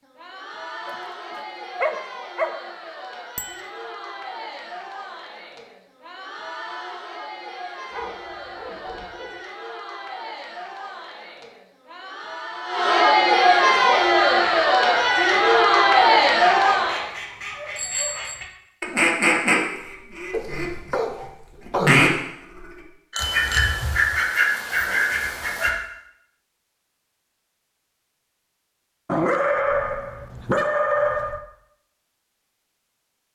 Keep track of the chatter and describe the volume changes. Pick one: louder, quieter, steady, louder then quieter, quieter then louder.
louder.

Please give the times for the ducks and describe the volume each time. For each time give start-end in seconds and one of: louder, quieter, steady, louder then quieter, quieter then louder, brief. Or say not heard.
13.8-25.7 louder.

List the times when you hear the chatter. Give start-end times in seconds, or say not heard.
0.0-17.1.